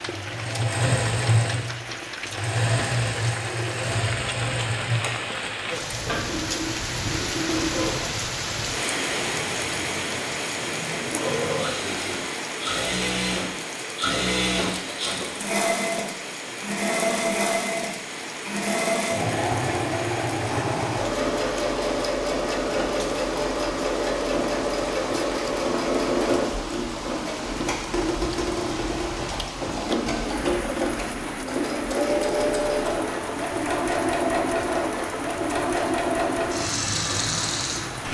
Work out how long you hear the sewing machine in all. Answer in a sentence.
The sewing machine can be heard for 38 seconds in total.